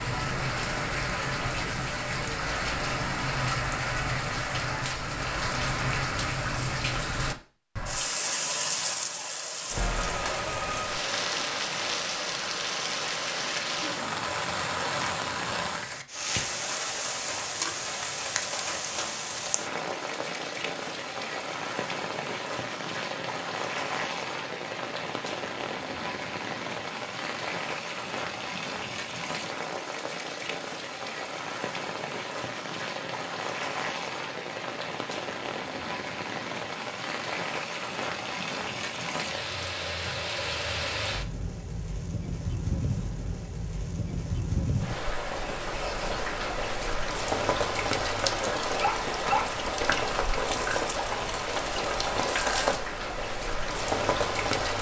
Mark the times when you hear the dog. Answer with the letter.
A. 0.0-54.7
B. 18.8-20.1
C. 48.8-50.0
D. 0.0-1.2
C.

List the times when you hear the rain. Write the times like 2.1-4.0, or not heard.
0.0-54.7.